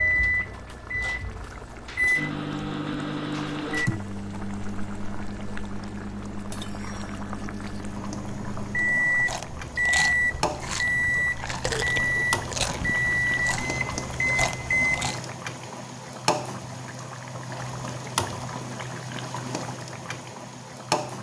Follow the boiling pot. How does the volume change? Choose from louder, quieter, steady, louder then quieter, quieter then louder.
louder.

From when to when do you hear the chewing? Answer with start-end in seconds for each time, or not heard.
9.2-15.2.